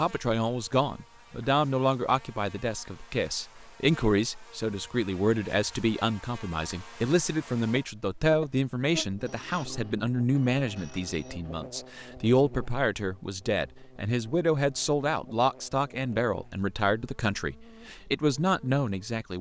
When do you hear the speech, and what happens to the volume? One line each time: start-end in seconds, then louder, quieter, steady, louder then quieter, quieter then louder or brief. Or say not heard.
0.0-19.3 steady.